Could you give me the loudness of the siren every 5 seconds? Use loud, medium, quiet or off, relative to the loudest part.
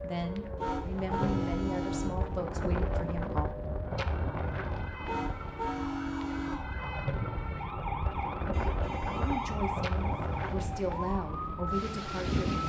medium, loud, loud.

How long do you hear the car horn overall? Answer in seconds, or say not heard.
5 s.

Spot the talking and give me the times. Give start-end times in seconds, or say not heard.
0.0-3.5, 9.2-12.4.